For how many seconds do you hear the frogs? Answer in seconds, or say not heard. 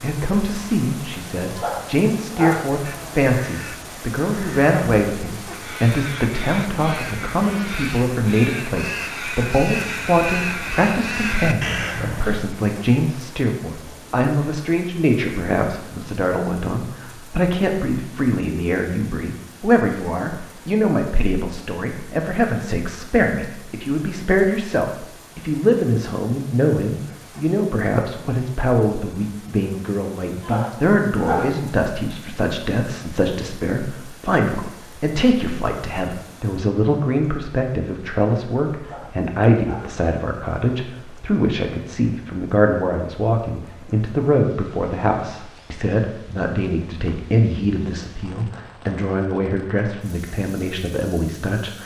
not heard.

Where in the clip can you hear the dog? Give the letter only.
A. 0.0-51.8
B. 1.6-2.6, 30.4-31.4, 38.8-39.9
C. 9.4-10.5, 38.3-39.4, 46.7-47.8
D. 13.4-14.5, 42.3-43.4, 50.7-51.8
B.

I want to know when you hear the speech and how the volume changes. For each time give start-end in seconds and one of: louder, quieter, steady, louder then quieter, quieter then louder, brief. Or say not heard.
0.0-51.8 steady.